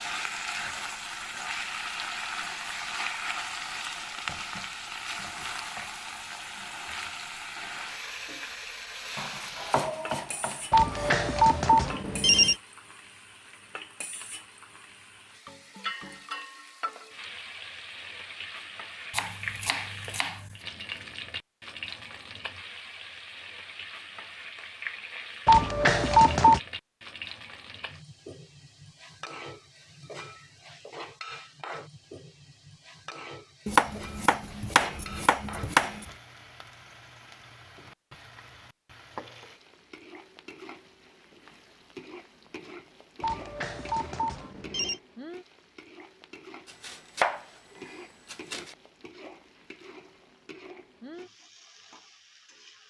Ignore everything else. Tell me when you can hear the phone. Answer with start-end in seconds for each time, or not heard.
10.7-12.6, 25.4-26.6, 43.2-45.0.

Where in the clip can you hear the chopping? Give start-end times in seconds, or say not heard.
9.2-11.1, 19.1-20.6, 33.6-36.0, 46.6-48.8.